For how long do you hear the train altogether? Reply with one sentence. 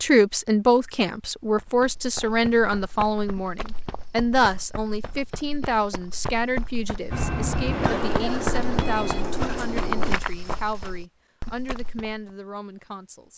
You can hear the train for 3 seconds altogether.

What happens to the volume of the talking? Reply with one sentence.
The loudness of the talking goes down.